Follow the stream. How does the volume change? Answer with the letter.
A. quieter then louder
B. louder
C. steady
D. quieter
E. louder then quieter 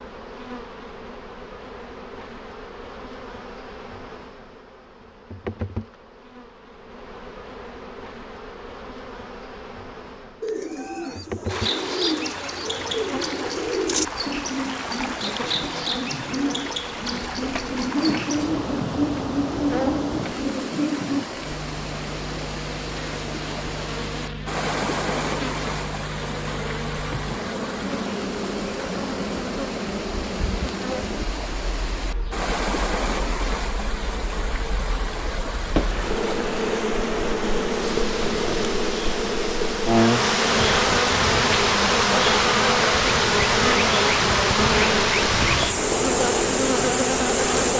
B.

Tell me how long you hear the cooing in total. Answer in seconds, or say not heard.
11 s.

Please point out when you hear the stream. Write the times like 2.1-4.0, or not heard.
11.4-47.7.